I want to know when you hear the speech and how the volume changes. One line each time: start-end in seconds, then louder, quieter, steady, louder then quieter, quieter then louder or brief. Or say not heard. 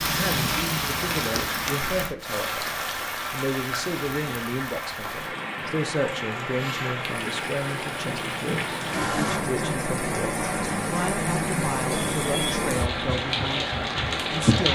0.1-2.7 brief
3.3-14.7 steady.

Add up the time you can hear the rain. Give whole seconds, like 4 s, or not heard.
15 s.